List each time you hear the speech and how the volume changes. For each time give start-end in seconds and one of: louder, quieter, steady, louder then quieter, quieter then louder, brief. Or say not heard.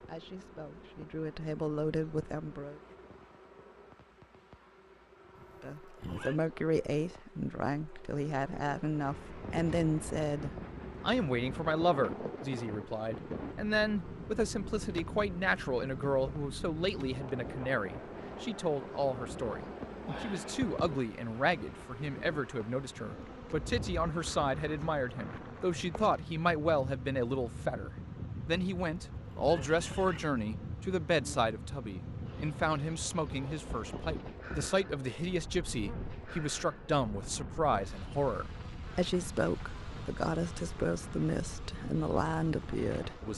0.0-2.8 brief
5.6-43.3 steady.